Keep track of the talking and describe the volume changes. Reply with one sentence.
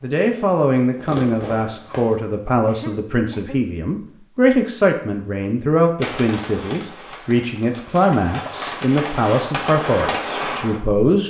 The loudness of the talking stays about the same.